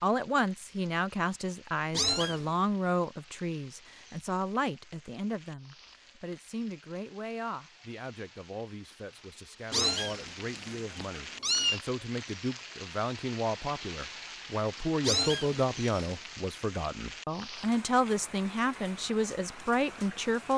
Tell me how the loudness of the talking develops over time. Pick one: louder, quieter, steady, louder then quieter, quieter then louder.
quieter then louder.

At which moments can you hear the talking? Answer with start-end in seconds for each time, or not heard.
0.0-20.5.